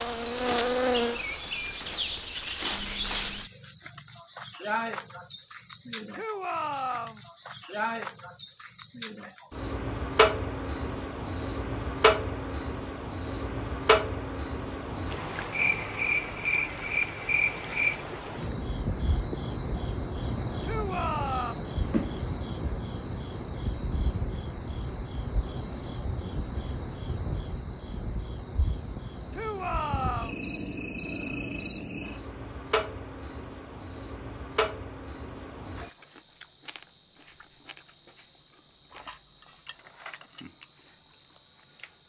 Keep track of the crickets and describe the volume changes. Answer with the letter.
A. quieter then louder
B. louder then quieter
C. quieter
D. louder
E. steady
C.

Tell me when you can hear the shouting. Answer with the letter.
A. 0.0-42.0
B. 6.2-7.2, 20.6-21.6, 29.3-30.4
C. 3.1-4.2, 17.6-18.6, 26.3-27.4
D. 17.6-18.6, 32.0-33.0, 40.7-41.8
B.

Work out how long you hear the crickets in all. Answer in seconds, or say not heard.
42 s.